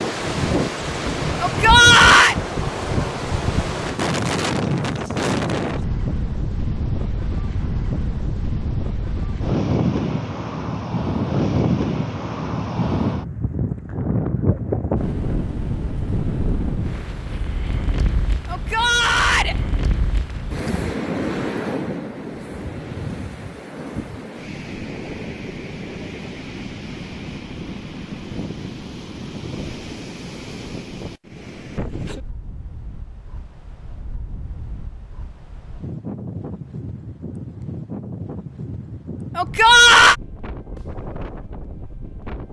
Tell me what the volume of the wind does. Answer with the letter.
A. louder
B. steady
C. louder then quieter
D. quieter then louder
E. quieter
E.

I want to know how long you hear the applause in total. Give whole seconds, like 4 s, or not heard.
not heard.